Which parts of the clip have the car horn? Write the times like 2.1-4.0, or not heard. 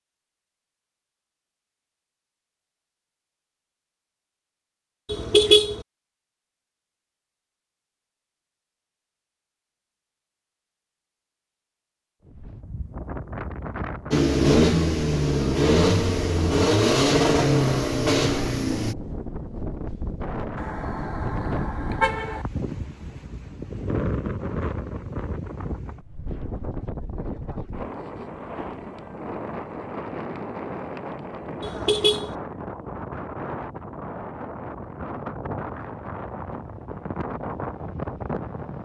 5.1-5.8, 20.6-22.4, 31.6-32.4.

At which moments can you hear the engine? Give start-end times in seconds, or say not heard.
14.1-18.9.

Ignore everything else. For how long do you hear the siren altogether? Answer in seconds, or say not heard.
not heard.